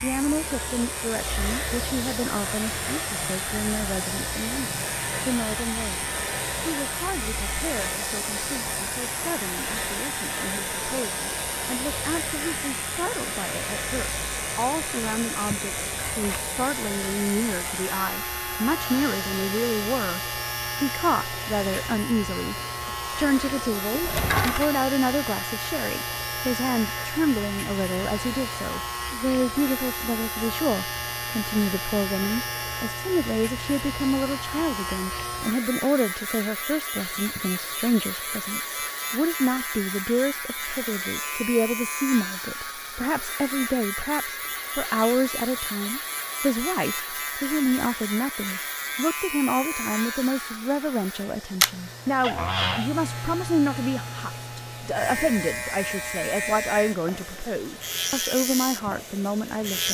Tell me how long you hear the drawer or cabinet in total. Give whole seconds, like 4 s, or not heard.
2 s.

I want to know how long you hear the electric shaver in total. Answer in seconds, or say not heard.
60 s.